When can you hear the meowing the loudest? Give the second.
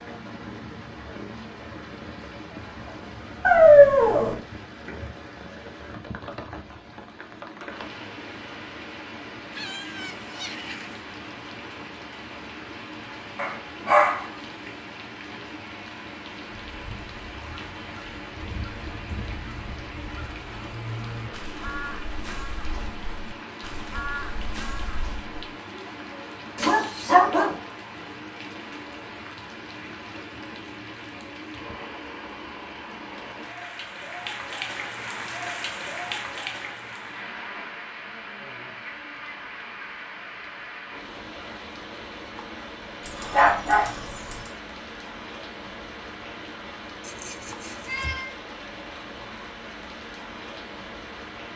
48 s.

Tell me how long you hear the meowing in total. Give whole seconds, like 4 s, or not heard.
3 s.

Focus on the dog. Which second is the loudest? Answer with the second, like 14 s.
4 s.